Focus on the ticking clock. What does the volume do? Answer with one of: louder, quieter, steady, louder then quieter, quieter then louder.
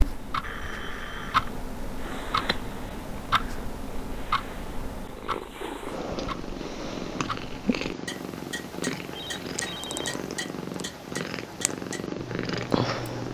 quieter.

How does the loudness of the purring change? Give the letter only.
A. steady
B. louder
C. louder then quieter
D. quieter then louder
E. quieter
B.